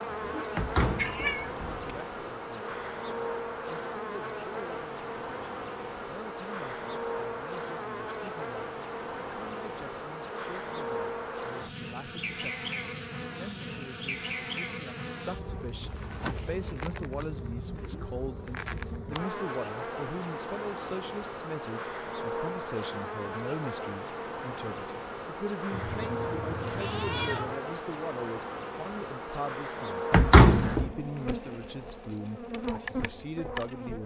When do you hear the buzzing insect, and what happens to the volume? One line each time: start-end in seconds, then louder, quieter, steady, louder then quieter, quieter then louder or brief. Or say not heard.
0.0-34.0 steady.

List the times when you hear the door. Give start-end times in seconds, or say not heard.
0.6-1.9, 30.1-30.9.